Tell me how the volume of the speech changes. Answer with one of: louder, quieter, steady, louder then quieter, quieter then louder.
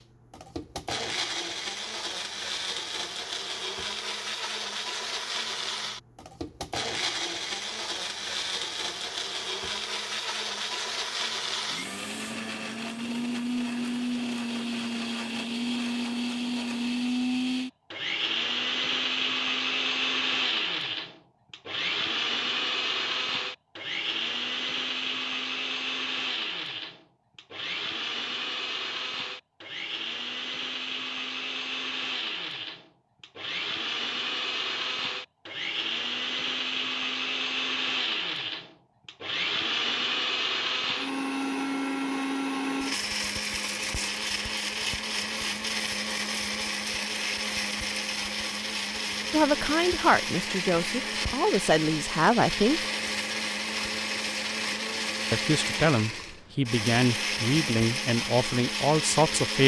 steady.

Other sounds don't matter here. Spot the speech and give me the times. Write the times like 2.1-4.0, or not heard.
49.3-52.8, 55.3-59.6.